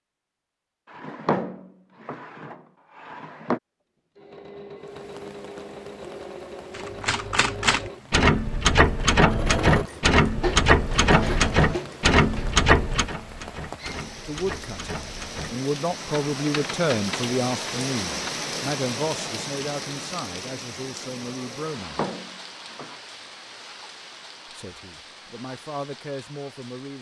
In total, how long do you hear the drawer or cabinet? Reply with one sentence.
The drawer or cabinet can be heard for 4 seconds in total.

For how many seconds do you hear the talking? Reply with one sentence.
The talking can be heard for 10 seconds in total.